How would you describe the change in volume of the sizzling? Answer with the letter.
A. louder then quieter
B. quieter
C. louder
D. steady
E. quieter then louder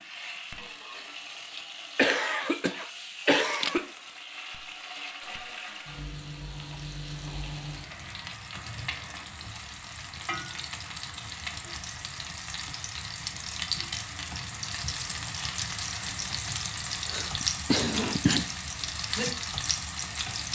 C.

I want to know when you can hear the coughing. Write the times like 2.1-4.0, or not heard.
1.6-3.9, 17.1-18.4.